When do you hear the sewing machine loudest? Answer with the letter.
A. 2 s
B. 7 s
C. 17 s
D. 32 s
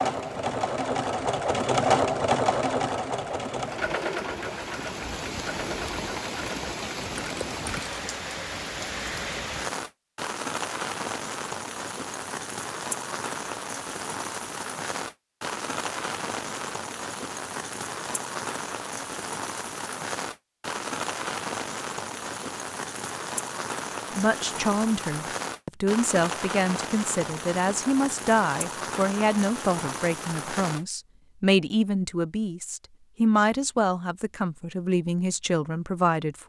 A.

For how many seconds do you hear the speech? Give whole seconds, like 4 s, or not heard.
12 s.